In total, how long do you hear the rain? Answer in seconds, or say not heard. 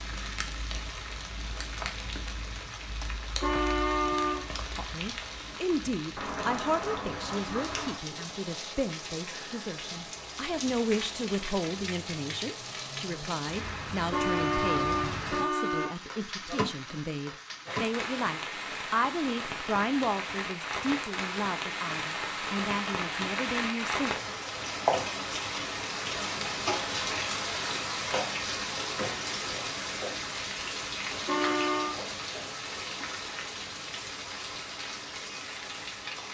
36 s.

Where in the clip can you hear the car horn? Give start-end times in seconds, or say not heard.
3.4-4.5, 14.1-15.9, 31.2-31.9.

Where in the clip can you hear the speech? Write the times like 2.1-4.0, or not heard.
4.8-24.4.